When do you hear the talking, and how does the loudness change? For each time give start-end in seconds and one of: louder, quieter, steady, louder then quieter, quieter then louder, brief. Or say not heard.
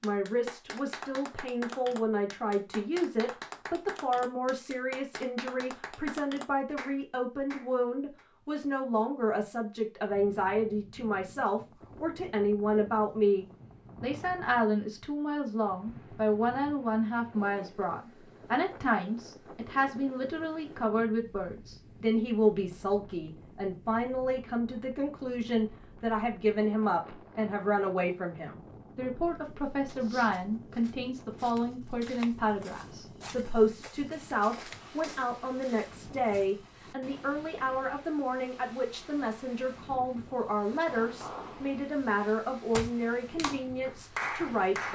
0.0-44.9 steady.